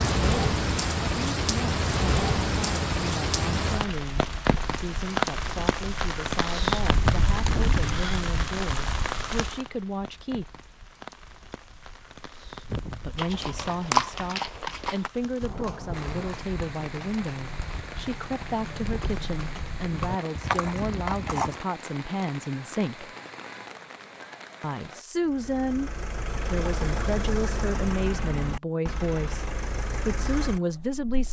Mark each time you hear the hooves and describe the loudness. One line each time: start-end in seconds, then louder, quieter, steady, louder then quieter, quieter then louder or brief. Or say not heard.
12.7-21.6 quieter then louder.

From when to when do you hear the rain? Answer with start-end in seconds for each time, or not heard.
0.0-25.1.